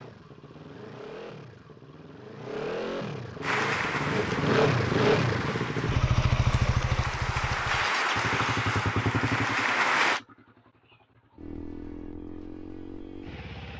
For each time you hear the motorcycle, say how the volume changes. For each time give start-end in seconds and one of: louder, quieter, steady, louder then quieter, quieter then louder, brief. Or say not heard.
0.0-13.7 louder then quieter.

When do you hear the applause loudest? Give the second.
10 s.